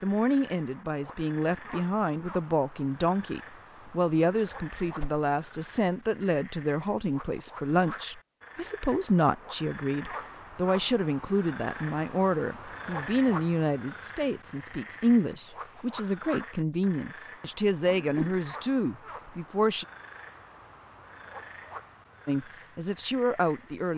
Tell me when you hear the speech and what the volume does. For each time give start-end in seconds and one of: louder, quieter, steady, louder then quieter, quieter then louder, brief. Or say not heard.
0.0-19.9 steady
22.2-23.9 brief.